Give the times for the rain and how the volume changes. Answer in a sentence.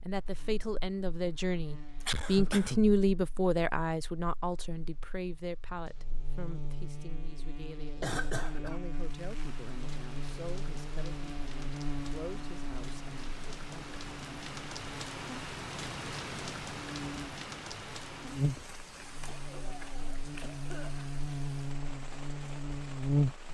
You can hear the rain from 8.9 to 23.4 s, getting louder then quieter.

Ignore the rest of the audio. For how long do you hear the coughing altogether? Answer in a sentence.
The coughing can be heard for 3 seconds in total.